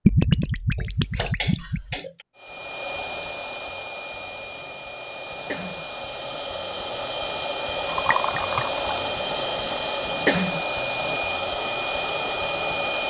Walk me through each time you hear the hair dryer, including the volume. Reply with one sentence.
You can hear the hair dryer from 2.4 to 13.0 s, getting louder.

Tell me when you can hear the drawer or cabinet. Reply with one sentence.
The drawer or cabinet can't be heard in this clip.